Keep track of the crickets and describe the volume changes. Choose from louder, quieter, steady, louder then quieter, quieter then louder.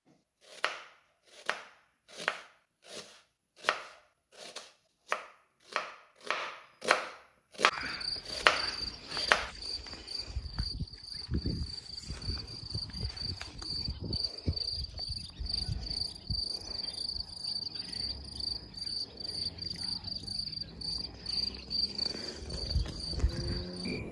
steady.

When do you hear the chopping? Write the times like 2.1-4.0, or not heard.
0.5-9.5.